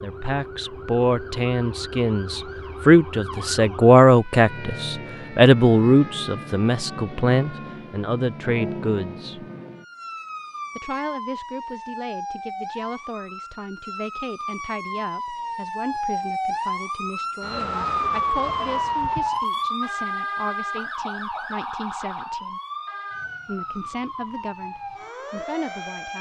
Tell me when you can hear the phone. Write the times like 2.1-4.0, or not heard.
not heard.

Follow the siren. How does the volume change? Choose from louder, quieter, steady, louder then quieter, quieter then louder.
louder then quieter.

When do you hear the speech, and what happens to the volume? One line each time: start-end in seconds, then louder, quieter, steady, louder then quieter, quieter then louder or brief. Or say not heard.
0.0-9.4 louder then quieter
10.8-22.6 steady
23.4-26.1 brief.